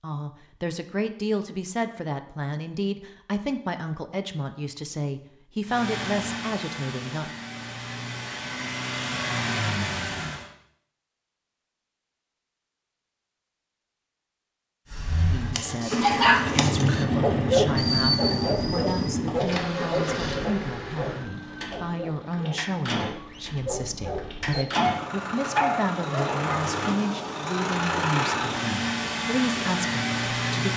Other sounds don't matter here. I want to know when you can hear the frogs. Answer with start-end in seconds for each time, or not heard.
not heard.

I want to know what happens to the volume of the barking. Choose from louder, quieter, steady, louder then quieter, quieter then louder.
quieter then louder.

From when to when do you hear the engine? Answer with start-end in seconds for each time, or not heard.
5.7-10.4, 14.9-30.7.